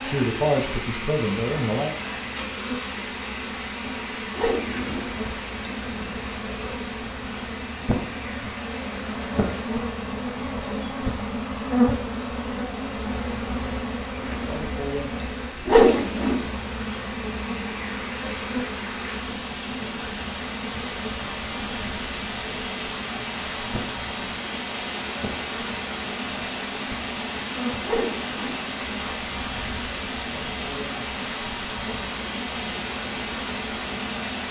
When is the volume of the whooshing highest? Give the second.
16 s.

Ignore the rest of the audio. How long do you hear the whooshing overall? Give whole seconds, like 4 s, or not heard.
2 s.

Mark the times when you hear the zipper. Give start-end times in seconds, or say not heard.
not heard.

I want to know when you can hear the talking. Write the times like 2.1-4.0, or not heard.
0.0-1.9.